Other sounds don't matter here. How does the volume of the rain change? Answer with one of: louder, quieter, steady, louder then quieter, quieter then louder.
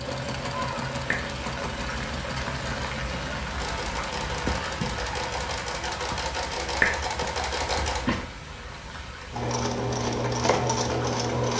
quieter.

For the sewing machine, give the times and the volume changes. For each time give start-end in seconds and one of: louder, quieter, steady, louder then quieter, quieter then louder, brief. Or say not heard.
0.0-11.5 louder.